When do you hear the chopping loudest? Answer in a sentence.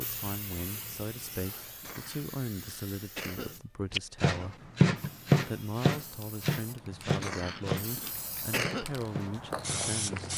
The volume of the chopping peaks at 5 seconds.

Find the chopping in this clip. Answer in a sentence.
You can hear the chopping from 3.9 to 9.8 s.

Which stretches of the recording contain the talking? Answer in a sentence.
The talking can be heard from 0.0 to 4.7 s and from 5.4 to 10.3 s.